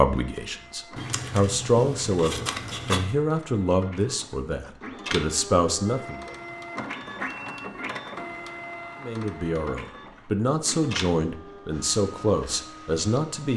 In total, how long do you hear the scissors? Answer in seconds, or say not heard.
2 s.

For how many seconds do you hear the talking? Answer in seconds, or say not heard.
11 s.